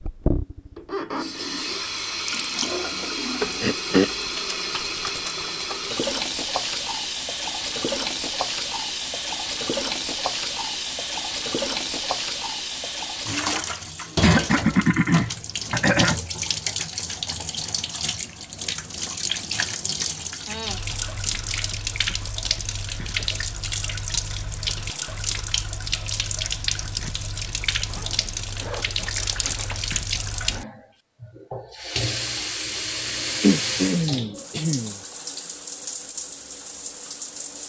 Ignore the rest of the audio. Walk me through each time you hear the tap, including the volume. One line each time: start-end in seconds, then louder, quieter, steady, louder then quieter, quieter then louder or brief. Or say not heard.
0.0-37.6 steady.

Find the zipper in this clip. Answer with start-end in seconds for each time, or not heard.
27.9-29.8.